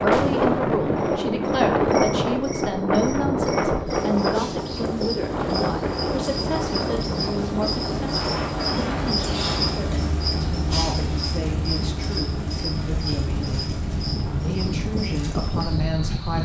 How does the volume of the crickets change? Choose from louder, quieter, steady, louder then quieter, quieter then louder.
louder then quieter.